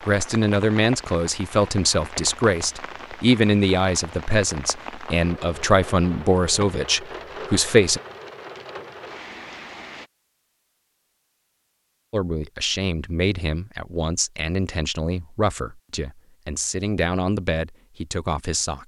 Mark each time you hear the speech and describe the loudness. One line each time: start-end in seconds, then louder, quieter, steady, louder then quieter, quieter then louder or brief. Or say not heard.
0.1-8.0 steady
12.1-18.8 steady.